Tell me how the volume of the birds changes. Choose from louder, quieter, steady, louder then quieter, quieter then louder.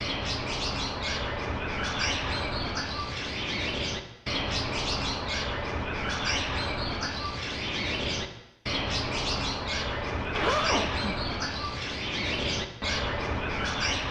steady.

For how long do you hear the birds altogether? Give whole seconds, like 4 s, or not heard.
14 s.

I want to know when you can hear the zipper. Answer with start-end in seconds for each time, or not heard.
10.2-11.1.